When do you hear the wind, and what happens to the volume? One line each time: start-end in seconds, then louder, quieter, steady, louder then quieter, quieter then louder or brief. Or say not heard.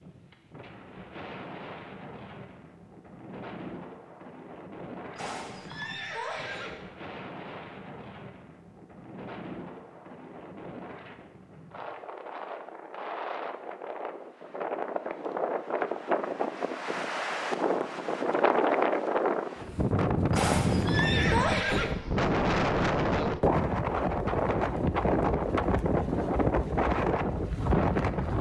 0.0-28.3 louder.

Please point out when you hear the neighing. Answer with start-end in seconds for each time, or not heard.
5.2-6.8, 20.3-21.9.